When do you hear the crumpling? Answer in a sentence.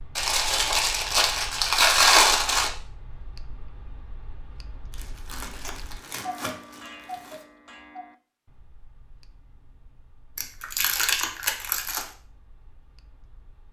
The crumpling can be heard from 0.1 to 2.7 s, from 4.9 to 7.5 s and from 10.3 to 12.1 s.